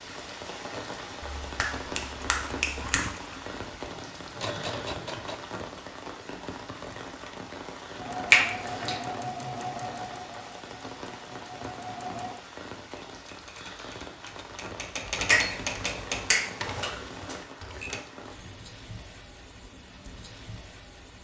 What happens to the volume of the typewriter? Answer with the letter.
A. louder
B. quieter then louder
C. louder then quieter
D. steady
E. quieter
C.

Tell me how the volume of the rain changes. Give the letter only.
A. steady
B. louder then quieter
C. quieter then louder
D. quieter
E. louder
D.